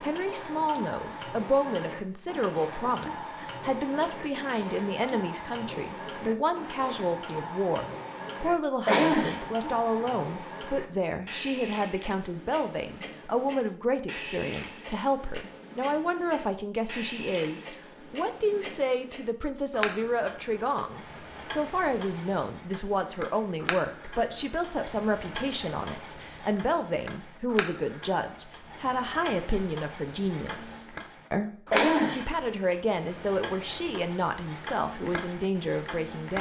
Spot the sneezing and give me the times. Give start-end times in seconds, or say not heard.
8.8-9.4, 31.7-32.2.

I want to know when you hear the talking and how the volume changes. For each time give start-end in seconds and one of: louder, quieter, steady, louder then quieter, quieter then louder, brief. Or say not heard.
0.0-31.5 steady
32.1-36.3 steady.